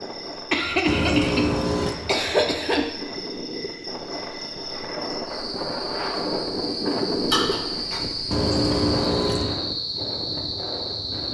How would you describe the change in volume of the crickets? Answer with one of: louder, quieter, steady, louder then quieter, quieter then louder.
louder.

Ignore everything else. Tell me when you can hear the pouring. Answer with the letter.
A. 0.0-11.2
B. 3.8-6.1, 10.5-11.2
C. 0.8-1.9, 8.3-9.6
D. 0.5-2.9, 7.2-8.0
C.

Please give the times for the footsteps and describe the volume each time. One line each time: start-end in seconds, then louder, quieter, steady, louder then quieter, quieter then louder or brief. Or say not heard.
not heard.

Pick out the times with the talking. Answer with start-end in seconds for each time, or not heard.
not heard.